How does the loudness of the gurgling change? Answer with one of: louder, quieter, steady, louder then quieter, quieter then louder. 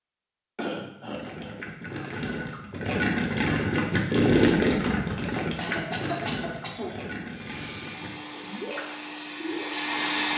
louder then quieter.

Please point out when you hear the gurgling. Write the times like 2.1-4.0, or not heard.
1.1-9.8.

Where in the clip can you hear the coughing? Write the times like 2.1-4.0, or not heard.
0.6-1.6, 5.5-7.0.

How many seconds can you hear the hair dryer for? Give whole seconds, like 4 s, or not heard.
3 s.